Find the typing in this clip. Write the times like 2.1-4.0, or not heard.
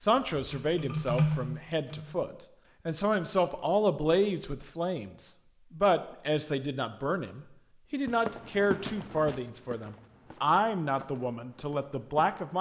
0.0-2.2.